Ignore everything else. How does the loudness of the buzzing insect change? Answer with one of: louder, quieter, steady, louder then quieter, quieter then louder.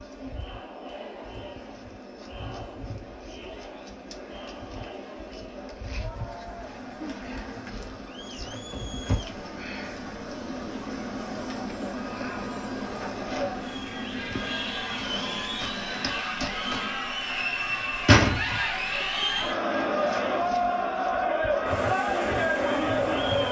louder then quieter.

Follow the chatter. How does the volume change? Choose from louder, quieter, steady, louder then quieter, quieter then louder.
louder.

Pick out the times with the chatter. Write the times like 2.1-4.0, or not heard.
0.0-23.4.